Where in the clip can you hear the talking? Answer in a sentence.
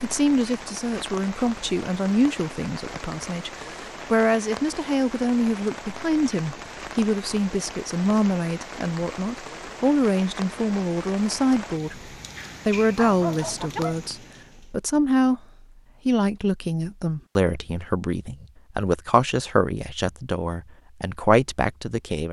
You can hear the talking from 0.0 to 15.4 s and from 16.1 to 22.2 s.